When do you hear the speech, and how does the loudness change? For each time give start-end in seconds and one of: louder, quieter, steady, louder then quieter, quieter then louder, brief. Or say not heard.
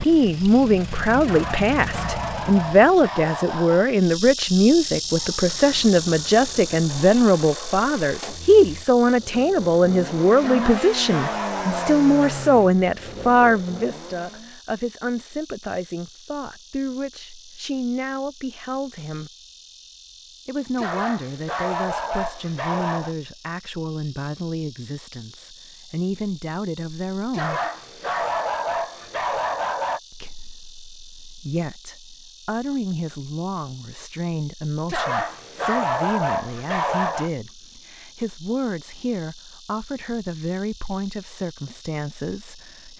0.1-19.3 quieter
20.4-27.6 quieter then louder
30.1-42.9 steady.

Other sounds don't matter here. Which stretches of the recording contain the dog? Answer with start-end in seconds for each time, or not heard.
1.2-3.9, 10.4-12.1, 20.8-23.1, 27.3-30.0, 34.9-37.3.